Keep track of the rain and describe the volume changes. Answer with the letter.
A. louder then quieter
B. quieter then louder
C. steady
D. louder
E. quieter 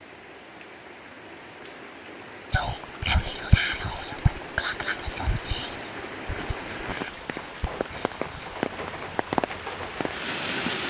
D.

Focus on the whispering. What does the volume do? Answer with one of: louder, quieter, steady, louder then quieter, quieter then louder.
quieter.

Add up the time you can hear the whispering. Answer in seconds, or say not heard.
6 s.